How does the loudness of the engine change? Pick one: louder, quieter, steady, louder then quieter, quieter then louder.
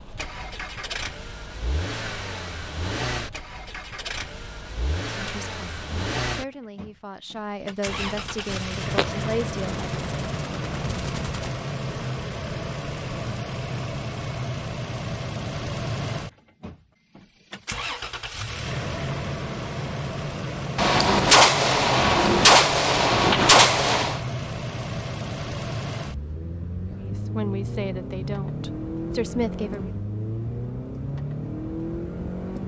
steady.